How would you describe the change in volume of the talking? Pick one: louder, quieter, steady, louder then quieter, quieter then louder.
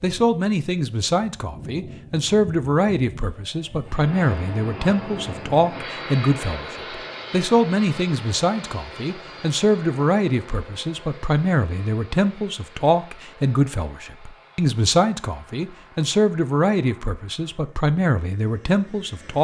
steady.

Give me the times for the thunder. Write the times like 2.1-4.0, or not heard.
not heard.